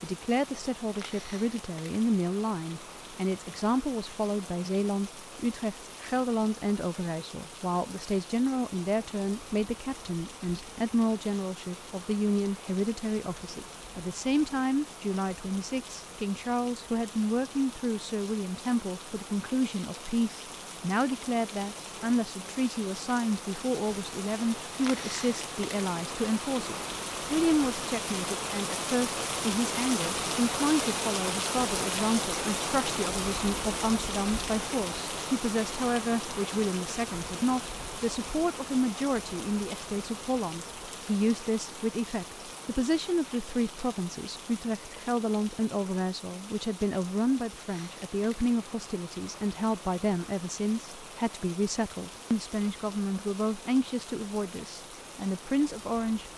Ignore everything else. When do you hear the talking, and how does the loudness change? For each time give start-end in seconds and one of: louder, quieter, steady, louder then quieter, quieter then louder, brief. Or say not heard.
0.0-56.2 steady.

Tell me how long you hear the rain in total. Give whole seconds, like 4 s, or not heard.
56 s.